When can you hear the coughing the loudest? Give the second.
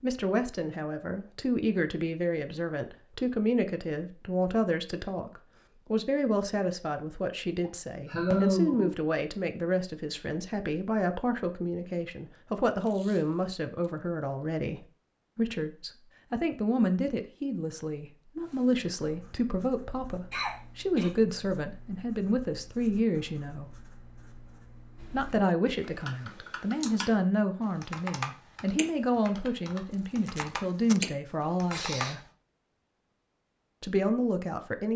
8 s.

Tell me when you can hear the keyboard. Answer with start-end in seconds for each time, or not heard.
24.9-32.1.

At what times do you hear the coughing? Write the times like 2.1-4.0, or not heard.
7.6-9.0, 20.3-21.1, 31.6-32.1.